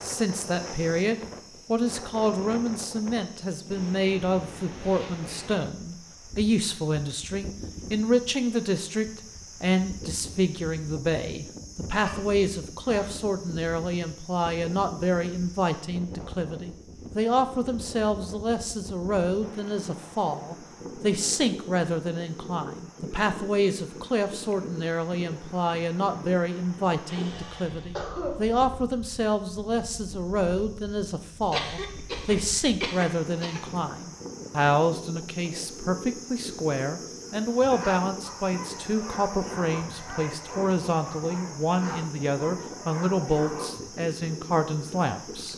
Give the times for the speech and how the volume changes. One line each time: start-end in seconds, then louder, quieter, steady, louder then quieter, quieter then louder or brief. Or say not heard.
0.0-45.5 steady.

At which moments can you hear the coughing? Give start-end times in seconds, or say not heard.
11.9-13.2, 26.6-28.4, 31.5-33.6.